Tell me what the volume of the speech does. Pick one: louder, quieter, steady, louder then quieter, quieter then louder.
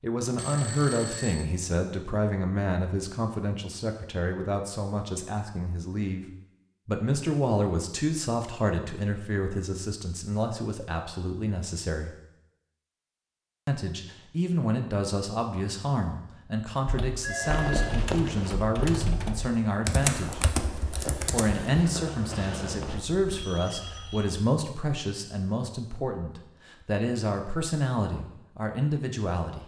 steady.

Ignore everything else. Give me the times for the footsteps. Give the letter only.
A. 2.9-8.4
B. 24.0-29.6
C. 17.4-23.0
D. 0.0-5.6
C.